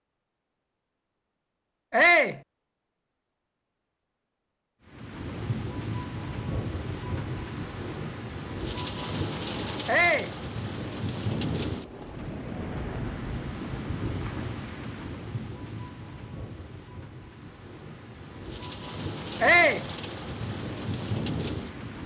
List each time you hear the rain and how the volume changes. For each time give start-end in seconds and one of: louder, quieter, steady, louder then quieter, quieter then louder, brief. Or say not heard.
4.8-22.0 quieter then louder.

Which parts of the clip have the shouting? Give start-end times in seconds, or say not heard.
1.9-2.4, 9.8-10.3, 19.4-19.9.